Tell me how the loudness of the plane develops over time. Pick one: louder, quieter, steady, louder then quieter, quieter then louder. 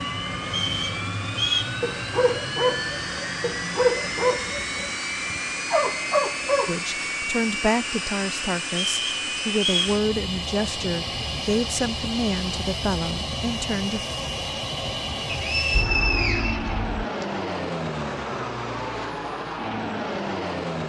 steady.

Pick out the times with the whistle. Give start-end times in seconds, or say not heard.
0.5-1.8, 8.7-9.9, 15.2-17.2.